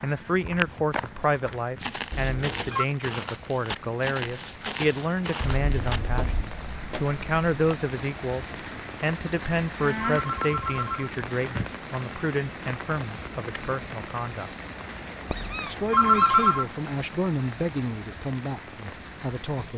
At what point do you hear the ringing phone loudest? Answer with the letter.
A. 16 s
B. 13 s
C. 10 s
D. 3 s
A.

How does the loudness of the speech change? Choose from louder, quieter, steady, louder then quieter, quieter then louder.
steady.